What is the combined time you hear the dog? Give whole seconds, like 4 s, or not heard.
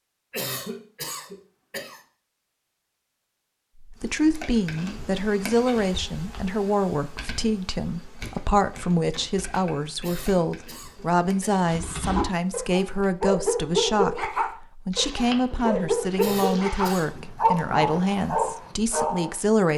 8 s.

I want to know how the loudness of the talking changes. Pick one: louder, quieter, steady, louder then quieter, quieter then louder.
steady.